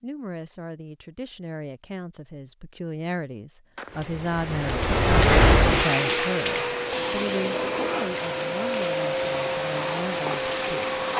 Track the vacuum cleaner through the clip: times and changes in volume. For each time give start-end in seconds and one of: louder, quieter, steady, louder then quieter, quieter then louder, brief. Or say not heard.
5.9-11.1 steady.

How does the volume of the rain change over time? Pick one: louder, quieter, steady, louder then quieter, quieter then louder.
quieter.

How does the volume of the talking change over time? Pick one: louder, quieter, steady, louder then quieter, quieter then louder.
louder then quieter.